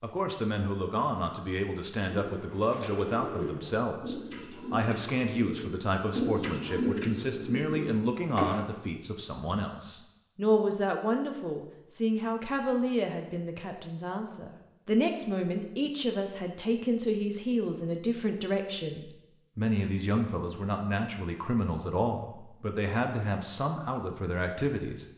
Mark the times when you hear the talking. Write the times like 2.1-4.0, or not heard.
0.0-25.1.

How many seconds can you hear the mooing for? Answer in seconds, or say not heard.
not heard.